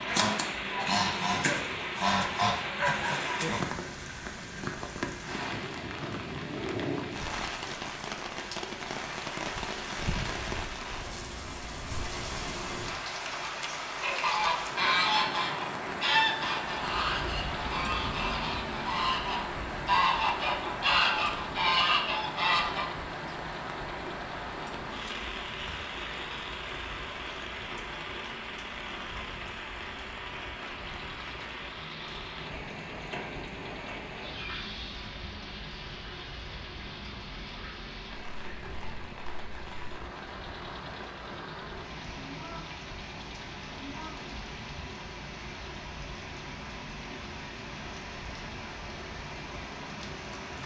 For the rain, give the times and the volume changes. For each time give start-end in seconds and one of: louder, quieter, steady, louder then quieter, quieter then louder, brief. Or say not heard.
0.0-50.6 quieter.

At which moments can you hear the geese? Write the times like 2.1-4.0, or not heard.
0.0-3.8, 13.9-22.9.